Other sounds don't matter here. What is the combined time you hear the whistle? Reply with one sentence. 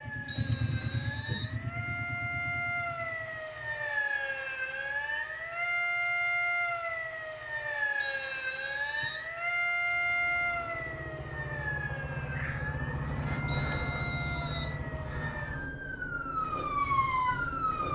You can hear the whistle for 4 seconds altogether.